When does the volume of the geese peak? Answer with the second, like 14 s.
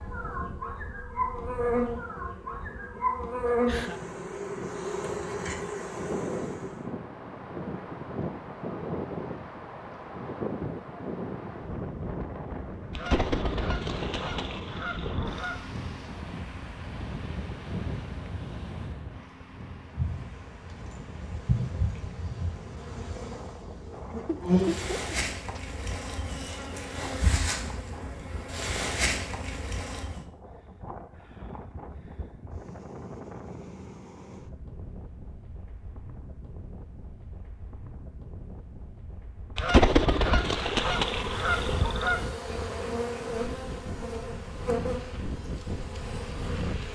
40 s.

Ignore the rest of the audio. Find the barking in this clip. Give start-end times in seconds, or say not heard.
not heard.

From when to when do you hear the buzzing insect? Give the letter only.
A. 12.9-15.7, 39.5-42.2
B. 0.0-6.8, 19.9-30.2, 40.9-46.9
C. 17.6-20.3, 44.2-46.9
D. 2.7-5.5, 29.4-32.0
B.